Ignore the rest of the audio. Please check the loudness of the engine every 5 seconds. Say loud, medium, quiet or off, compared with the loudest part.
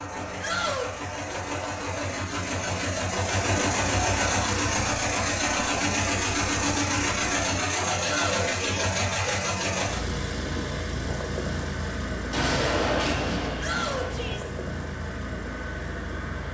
loud, loud, medium, medium.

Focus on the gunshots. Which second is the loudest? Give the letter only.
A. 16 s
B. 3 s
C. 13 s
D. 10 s
C.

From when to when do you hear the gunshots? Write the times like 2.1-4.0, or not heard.
12.3-14.3.